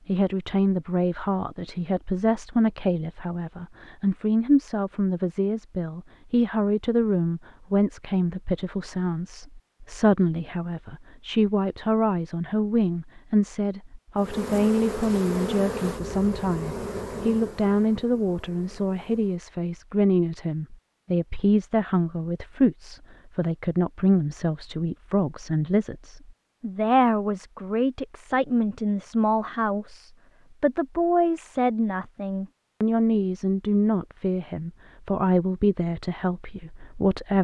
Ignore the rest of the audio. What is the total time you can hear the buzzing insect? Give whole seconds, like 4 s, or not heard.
5 s.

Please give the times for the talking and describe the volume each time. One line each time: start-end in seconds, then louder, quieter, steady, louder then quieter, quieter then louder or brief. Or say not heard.
0.1-37.4 steady.